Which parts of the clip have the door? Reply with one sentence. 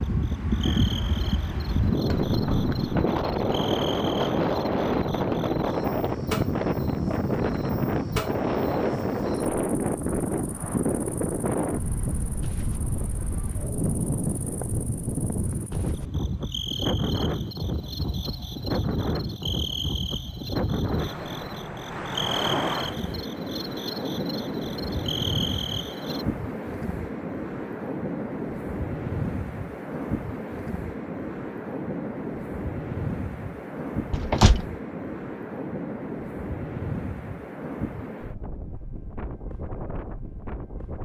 The door can be heard from 2.0 to 3.0 s and from 34.1 to 34.6 s.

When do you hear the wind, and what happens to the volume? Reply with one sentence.
You can hear the wind from 0.0 to 41.0 s, getting quieter.